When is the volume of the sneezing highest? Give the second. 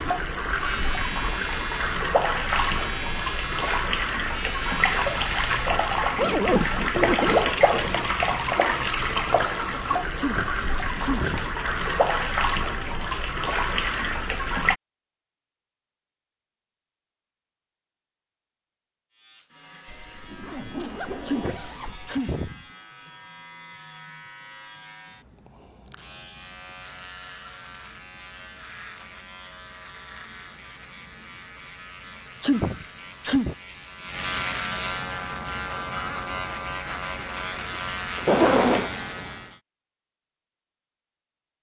33 s.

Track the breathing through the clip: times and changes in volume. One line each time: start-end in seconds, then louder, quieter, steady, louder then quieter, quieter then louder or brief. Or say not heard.
not heard.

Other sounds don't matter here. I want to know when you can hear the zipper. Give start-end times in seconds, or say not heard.
6.2-7.5, 19.9-22.1, 38.1-39.0.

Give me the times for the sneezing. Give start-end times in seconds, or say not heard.
10.2-11.6, 21.2-22.6, 32.4-33.5.